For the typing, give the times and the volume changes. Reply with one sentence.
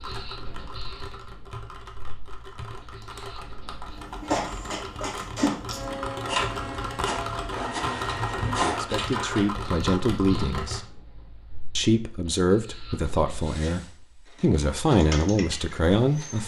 You can hear the typing from 0.0 to 10.8 s, getting louder; and briefly from 14.9 to 16.4 s.